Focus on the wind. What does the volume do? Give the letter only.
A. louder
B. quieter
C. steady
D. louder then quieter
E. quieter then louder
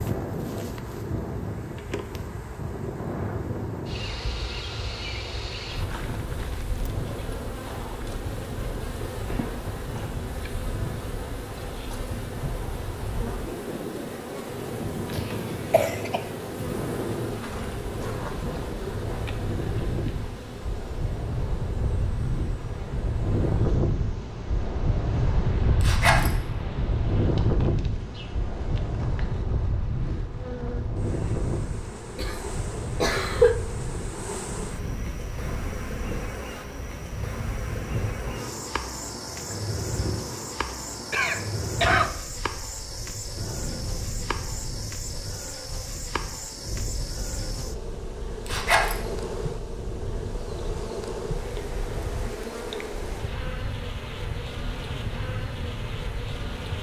D.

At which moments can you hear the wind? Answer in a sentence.
You can hear the wind from 0.0 to 56.7 s.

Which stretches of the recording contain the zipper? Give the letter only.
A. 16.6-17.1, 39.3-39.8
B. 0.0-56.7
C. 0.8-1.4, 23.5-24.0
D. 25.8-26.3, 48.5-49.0
D.